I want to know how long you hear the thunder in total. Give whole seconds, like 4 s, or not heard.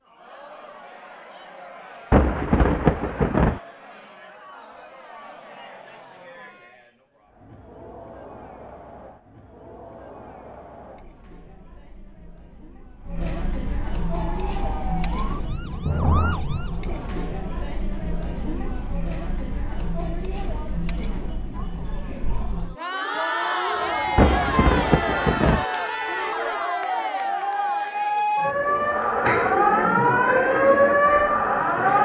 3 s.